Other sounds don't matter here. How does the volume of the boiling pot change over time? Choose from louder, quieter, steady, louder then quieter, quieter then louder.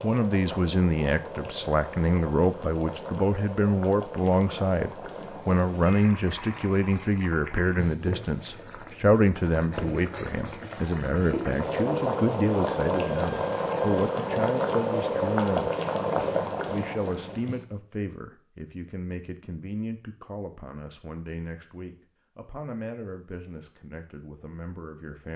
louder.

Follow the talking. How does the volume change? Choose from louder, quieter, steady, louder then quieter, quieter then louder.
quieter.